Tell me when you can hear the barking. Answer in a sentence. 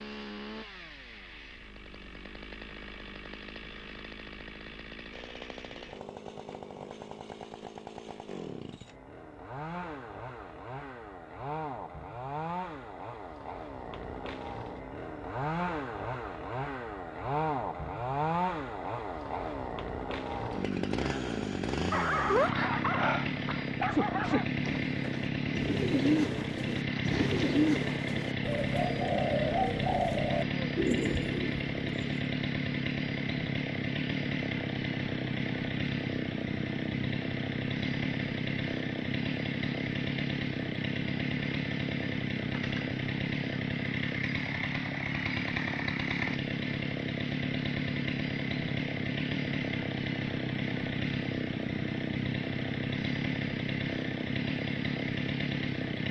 You can hear the barking from 21.9 to 24.4 s.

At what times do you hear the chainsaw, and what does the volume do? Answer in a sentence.
You can hear the chainsaw from 0.0 to 56.0 s, getting louder.